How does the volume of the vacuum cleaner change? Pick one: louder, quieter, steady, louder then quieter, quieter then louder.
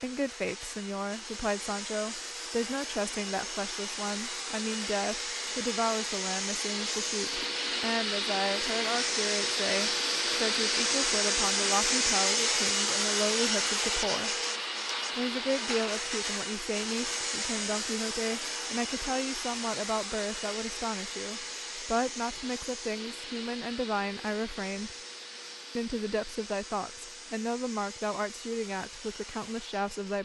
louder then quieter.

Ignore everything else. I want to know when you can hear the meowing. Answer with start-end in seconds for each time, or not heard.
not heard.